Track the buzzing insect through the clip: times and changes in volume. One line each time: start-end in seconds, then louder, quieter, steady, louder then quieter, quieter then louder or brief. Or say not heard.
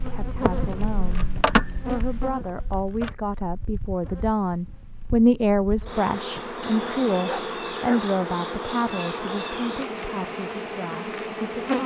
0.0-11.8 quieter then louder.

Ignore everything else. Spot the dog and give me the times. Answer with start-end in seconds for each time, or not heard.
7.2-8.1.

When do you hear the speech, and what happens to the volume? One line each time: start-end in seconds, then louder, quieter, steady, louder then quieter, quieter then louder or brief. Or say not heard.
0.0-11.8 louder then quieter.